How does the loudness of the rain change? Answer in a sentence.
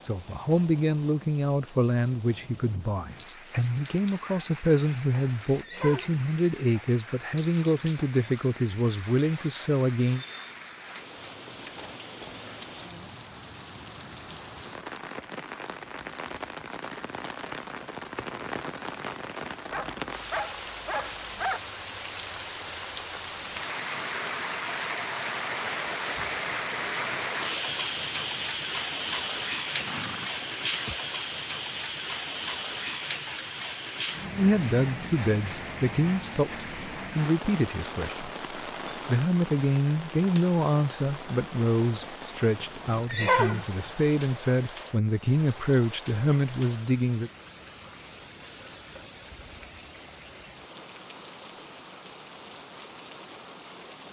The volume of the rain goes up, then down.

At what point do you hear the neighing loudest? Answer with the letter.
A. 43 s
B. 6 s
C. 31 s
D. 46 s
A.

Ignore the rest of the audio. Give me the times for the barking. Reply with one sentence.
The barking can be heard from 19.7 to 21.6 s.